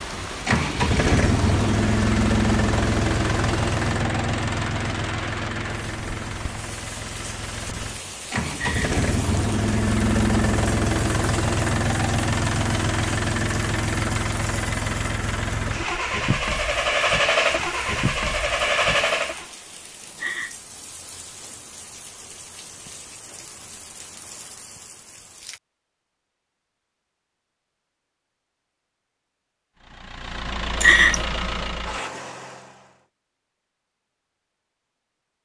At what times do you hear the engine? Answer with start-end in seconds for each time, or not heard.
0.2-19.4, 29.8-33.0.